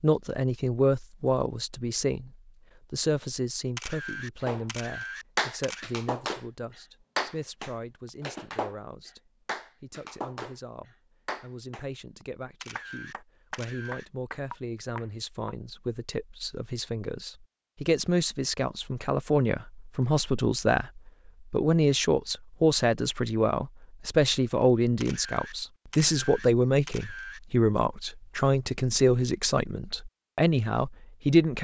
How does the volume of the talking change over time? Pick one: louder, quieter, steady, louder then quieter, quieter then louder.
quieter then louder.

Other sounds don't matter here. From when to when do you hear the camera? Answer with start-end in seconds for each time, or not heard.
3.8-5.8, 12.6-14.1, 25.0-27.4.